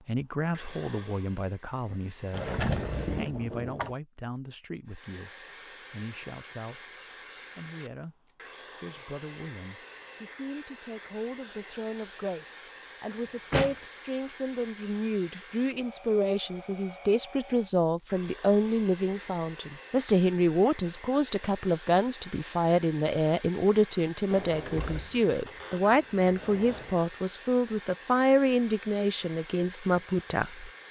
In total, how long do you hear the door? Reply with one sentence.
You can hear the door for 5 seconds altogether.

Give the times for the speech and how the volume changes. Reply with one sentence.
The speech can be heard from 0.1 to 7.0 s, getting quieter; and from 7.5 to 30.7 s, getting louder.